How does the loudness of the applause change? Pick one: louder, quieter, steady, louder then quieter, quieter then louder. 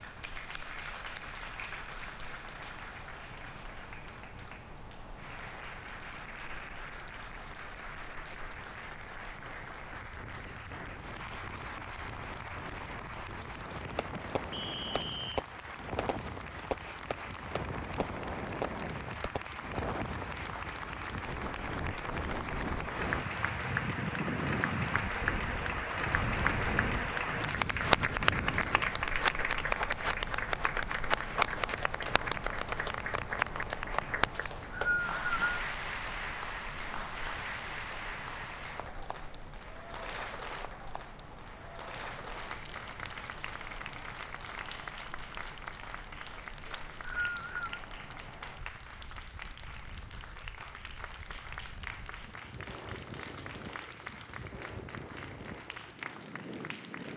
louder then quieter.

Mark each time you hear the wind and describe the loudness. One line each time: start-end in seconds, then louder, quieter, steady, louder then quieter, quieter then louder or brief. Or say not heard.
0.0-57.1 louder then quieter.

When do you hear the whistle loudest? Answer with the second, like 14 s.
35 s.